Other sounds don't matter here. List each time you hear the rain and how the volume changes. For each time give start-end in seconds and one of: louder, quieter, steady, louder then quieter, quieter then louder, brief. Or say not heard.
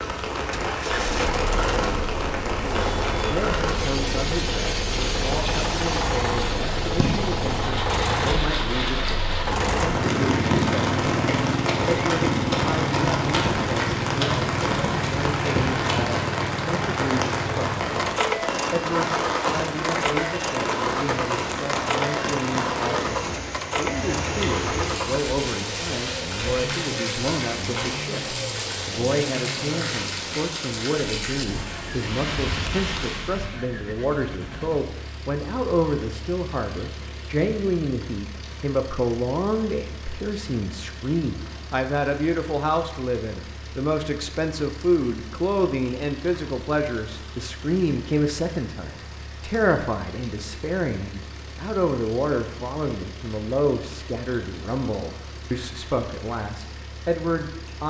0.0-57.8 quieter.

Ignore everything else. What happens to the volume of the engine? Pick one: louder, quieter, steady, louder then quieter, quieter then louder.
quieter.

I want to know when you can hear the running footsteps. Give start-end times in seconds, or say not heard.
10.7-16.1.